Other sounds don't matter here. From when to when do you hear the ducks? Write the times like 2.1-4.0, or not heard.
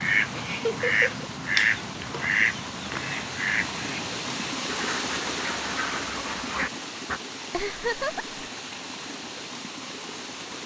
0.0-7.2.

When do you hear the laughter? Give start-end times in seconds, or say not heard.
0.3-1.2, 7.5-8.2.